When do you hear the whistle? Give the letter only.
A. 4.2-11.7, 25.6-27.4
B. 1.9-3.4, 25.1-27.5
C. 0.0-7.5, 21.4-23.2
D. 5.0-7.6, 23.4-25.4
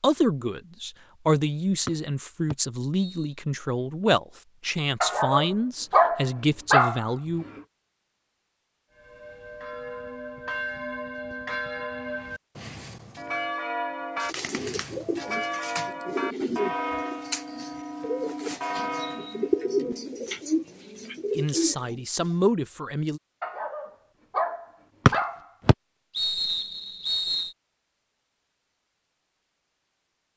B.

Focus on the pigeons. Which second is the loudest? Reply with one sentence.
The loudest moment of the pigeons is at 20 seconds.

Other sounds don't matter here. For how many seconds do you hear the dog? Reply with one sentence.
You can hear the dog for 5 seconds altogether.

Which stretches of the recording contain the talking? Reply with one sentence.
You can hear the talking from 0.0 to 7.5 s and from 21.4 to 23.2 s.